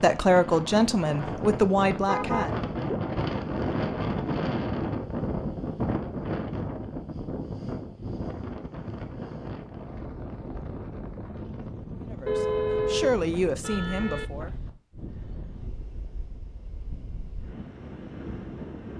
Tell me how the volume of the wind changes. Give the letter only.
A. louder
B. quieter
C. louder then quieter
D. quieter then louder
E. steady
B.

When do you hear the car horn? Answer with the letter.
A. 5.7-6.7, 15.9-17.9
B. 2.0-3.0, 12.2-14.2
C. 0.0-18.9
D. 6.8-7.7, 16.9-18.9
B.